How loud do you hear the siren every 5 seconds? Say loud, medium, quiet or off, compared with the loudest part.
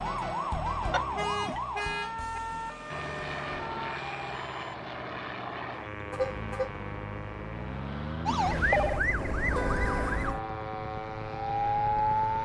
medium, loud, loud.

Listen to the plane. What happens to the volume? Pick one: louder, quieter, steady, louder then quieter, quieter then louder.
steady.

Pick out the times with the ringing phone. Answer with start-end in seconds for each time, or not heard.
0.9-1.6, 8.2-9.1.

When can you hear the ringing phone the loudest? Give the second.
9 s.